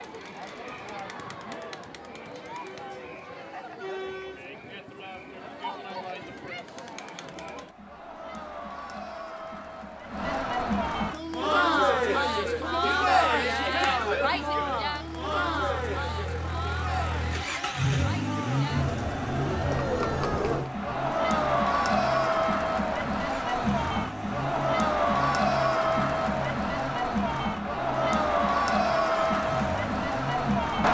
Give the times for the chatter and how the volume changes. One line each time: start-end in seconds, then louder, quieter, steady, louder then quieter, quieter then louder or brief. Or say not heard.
0.0-30.8 louder.